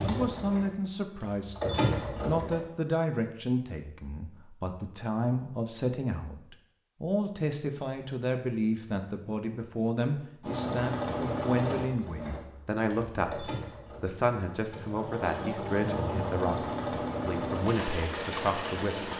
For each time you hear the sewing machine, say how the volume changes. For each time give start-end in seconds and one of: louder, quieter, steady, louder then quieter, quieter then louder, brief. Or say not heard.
0.0-2.6 brief
10.4-19.1 quieter then louder.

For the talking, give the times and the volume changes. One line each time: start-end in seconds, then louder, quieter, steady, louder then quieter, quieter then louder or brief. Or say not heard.
0.0-19.1 steady.